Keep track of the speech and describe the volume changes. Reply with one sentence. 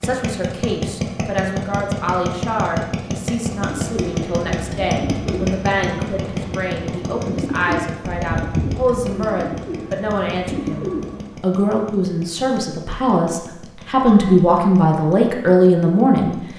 The volume of the speech goes up.